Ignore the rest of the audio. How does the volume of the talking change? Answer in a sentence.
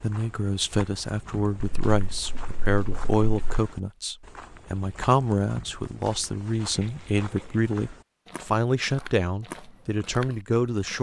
The loudness of the talking stays about the same.